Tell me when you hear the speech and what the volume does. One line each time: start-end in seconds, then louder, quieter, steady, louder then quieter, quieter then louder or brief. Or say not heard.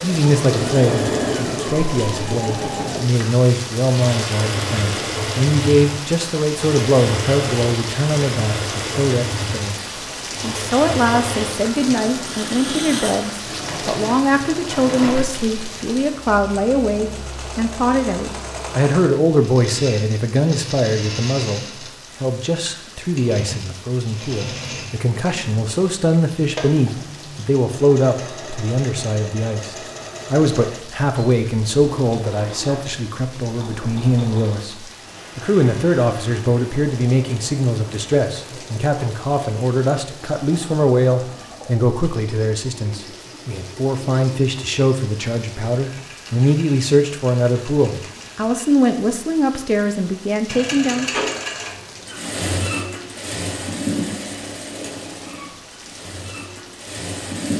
0.0-51.1 steady.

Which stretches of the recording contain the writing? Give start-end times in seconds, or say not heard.
not heard.